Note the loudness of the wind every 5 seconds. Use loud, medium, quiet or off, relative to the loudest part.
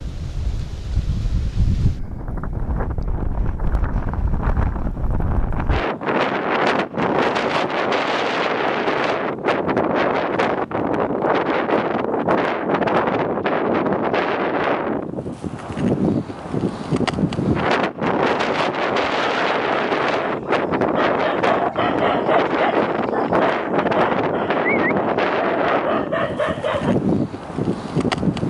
medium, loud, loud, loud, loud, loud.